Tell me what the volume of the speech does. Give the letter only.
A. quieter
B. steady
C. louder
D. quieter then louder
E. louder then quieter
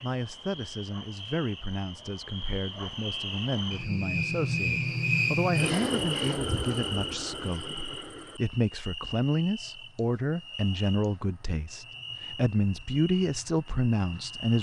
C.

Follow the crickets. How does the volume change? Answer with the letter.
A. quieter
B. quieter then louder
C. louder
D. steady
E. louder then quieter
E.